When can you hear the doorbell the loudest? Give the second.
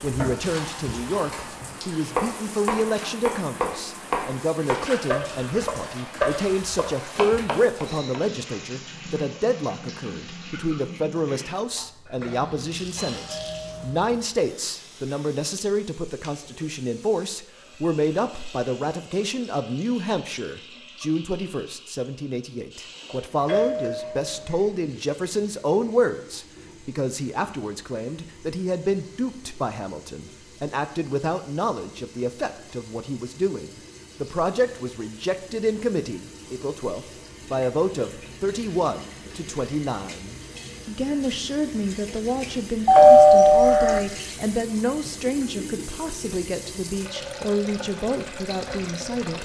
43 s.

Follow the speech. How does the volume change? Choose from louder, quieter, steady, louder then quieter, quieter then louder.
steady.